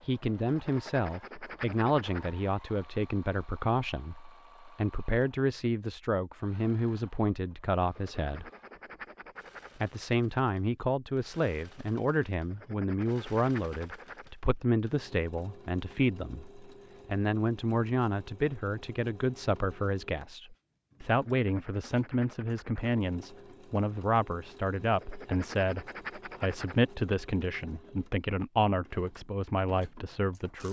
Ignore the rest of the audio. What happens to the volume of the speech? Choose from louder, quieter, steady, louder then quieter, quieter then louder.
steady.